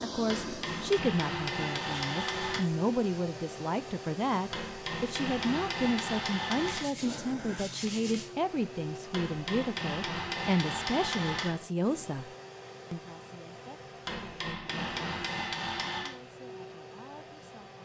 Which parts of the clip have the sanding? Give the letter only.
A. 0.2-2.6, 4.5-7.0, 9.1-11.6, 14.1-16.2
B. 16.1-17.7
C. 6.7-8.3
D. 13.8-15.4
C.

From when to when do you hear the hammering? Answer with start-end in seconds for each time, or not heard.
0.2-2.6, 4.5-7.0, 9.1-11.6, 14.1-16.2.